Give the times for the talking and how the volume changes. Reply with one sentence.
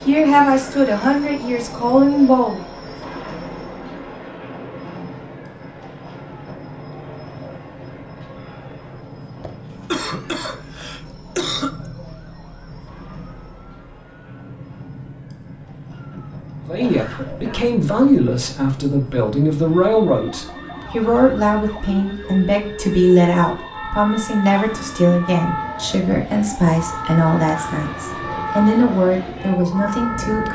You can hear the talking briefly from 0.1 to 2.6 s; and from 16.6 to 30.4 s, at a steady volume.